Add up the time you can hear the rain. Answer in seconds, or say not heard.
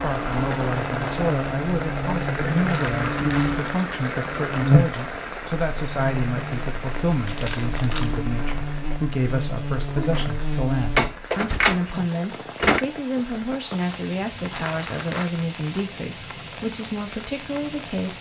18 s.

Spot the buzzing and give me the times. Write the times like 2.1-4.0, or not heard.
0.0-11.1.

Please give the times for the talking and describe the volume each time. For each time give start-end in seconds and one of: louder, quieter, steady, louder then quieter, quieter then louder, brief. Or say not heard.
0.0-18.1 steady.